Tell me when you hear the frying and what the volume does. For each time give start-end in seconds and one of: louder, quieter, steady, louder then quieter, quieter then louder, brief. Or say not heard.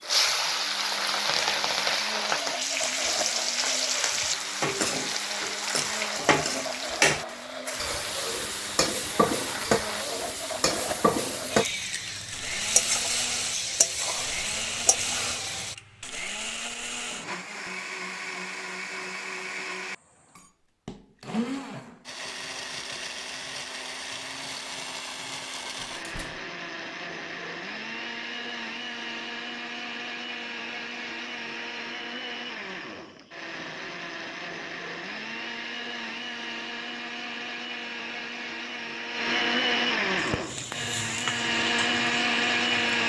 0.1-15.8 steady
40.1-43.0 brief.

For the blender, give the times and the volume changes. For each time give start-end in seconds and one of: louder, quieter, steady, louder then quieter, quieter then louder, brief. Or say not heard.
0.0-43.0 louder.